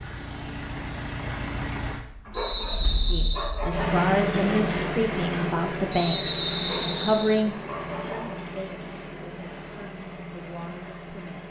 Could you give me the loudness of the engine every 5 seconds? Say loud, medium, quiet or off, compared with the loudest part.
loud, loud, medium.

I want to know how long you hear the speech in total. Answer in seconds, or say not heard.
8 s.